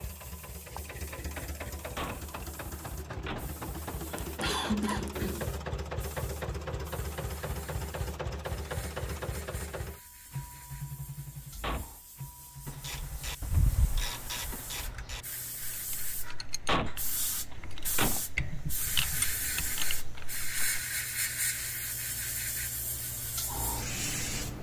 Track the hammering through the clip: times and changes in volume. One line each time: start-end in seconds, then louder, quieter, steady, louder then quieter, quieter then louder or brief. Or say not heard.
not heard.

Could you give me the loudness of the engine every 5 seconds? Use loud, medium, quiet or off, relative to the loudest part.
loud, loud, medium, quiet, medium.